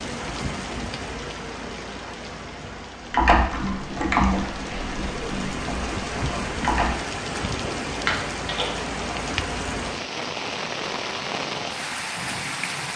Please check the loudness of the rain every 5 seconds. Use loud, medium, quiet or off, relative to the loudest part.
medium, loud, loud.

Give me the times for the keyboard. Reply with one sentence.
The keyboard can be heard from 3.1 to 8.9 s.